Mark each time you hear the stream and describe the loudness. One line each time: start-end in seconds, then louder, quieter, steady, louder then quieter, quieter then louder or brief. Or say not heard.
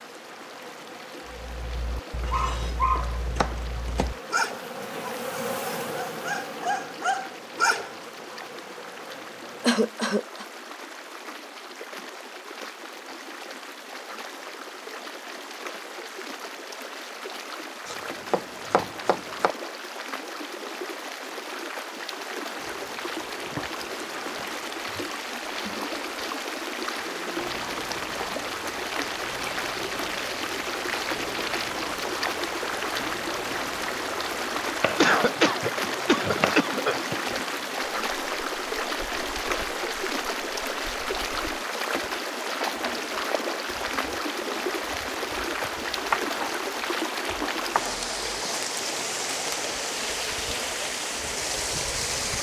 0.0-52.3 louder.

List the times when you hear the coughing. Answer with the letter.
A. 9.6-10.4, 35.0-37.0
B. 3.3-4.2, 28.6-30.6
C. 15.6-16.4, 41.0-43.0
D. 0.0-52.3
A.